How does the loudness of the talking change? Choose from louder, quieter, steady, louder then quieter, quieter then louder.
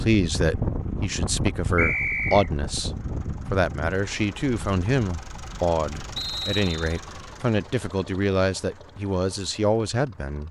steady.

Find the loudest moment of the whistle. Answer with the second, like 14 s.
2 s.